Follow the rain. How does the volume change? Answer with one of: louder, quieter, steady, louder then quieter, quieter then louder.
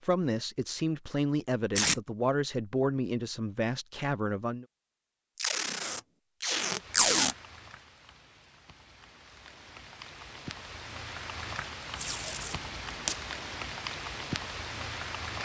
louder.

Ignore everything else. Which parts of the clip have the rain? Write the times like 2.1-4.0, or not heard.
6.7-15.4.